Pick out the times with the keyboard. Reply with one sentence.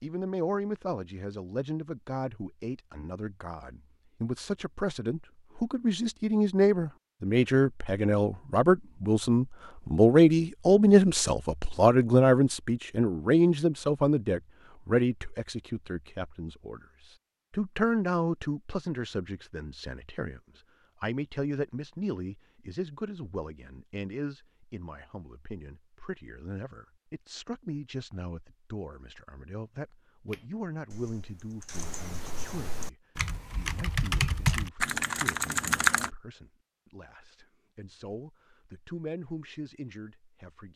You can hear the keyboard from 30.2 to 36.1 s.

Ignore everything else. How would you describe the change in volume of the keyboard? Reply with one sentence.
The loudness of the keyboard goes up.